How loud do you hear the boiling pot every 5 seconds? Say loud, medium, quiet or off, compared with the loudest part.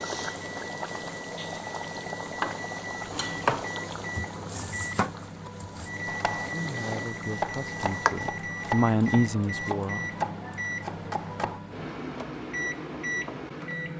loud, loud, off.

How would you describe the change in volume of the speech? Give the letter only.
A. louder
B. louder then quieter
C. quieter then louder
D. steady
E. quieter
B.